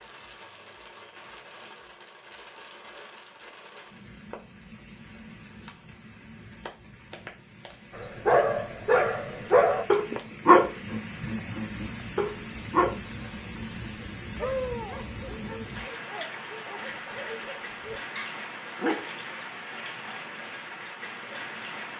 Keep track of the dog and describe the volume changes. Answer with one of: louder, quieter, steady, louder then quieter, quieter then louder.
quieter.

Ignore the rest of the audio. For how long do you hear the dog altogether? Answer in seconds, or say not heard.
11 s.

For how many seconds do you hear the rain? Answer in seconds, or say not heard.
22 s.